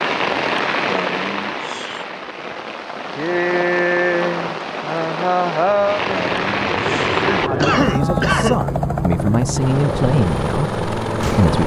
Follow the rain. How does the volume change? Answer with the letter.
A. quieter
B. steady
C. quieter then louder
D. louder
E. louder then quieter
C.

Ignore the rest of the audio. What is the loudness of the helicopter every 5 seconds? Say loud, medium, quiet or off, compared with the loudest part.
off, loud, loud.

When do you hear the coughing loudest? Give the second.
8 s.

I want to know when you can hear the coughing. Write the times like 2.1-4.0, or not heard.
0.8-2.0, 6.0-8.6.